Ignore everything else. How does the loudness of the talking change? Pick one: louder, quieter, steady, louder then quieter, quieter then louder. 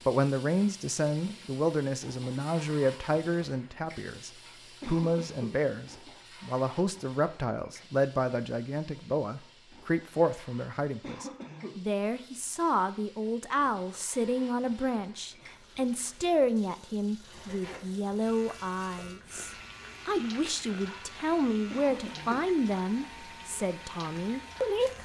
steady.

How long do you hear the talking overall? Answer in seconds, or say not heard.
25 s.